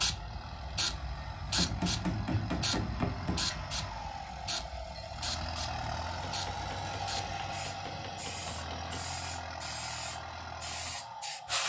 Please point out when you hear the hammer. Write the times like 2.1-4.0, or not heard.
1.4-3.5, 6.2-9.1.